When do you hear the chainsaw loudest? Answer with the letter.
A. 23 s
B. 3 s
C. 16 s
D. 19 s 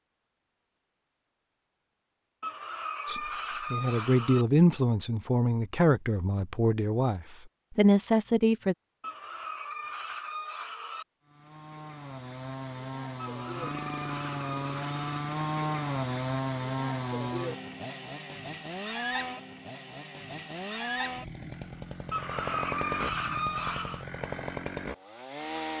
C.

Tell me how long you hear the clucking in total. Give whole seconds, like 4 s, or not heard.
8 s.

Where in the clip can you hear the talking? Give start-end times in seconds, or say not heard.
3.0-8.8.